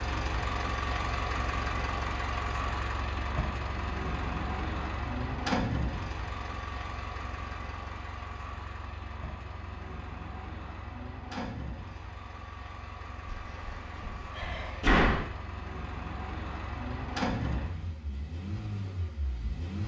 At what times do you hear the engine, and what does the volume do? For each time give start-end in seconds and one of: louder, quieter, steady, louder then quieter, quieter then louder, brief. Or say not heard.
0.0-19.8 quieter then louder.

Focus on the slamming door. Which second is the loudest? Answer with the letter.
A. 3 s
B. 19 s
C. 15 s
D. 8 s
C.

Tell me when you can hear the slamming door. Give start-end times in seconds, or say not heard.
13.2-15.2.